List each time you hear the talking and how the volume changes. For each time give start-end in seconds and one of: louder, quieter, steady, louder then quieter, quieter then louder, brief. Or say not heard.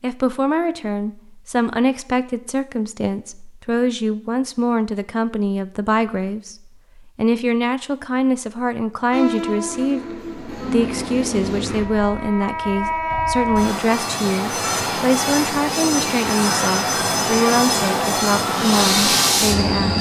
0.0-19.9 steady.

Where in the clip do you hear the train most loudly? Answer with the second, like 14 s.
19 s.